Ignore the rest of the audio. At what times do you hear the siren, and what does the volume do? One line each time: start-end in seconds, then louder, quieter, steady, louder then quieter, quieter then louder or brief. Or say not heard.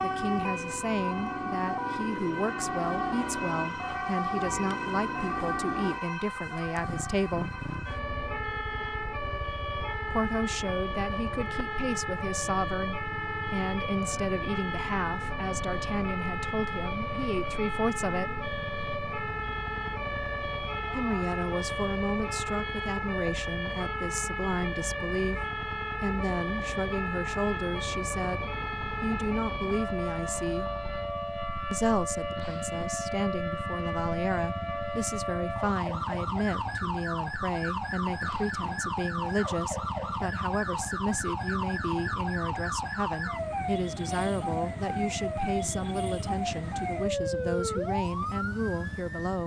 0.0-49.4 steady.